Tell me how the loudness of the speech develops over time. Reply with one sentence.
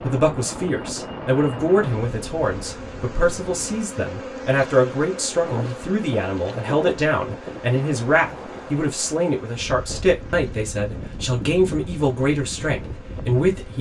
The loudness of the speech stays about the same.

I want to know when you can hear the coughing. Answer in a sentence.
You can't hear the coughing here.